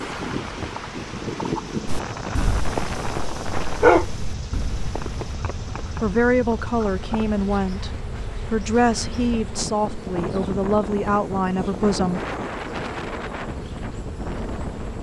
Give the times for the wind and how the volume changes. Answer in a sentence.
The wind can be heard from 0.0 to 14.9 s, getting quieter then louder.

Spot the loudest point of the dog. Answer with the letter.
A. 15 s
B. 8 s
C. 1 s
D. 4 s
D.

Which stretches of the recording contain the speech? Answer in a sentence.
You can hear the speech from 6.0 to 12.2 s.